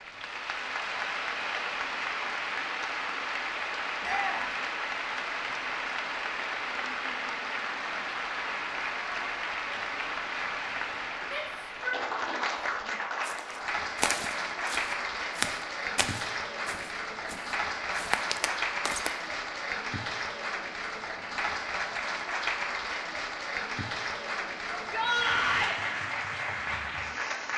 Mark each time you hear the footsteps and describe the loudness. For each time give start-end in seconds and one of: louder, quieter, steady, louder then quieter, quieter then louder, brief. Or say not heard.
13.2-19.1 quieter then louder.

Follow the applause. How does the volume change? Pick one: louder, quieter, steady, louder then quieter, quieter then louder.
steady.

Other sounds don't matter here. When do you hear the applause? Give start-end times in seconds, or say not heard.
0.0-27.5.